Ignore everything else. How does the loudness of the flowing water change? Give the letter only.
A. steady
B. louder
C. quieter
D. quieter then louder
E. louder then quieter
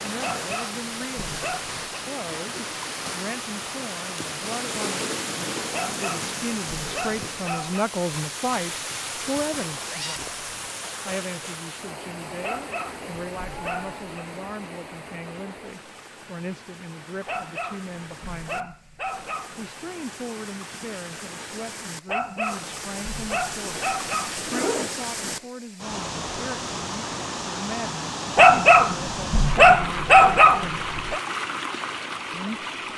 D.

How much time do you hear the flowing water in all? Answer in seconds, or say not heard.
33 s.